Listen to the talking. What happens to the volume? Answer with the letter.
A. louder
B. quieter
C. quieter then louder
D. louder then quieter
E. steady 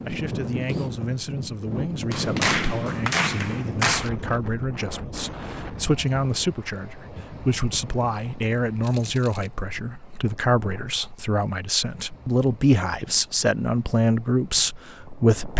A.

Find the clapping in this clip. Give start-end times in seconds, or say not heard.
2.1-4.1.